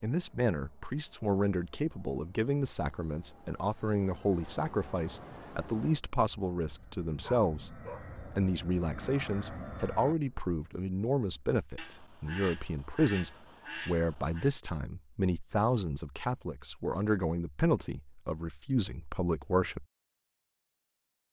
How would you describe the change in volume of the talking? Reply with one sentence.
The loudness of the talking stays about the same.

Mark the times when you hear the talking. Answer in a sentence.
The talking can be heard from 0.0 to 19.9 s.